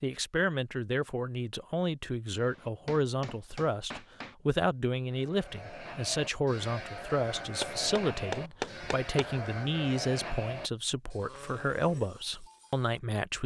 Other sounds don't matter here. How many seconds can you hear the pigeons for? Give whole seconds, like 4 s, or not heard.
not heard.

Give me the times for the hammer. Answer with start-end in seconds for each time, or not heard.
2.4-4.3, 7.6-9.5.